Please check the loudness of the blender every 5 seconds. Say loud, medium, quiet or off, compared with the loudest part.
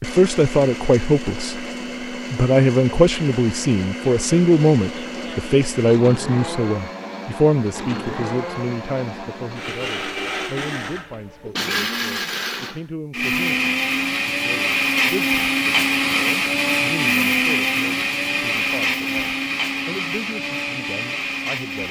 medium, medium, loud, loud, medium.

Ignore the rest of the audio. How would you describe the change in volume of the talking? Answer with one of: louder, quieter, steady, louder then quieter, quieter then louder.
quieter.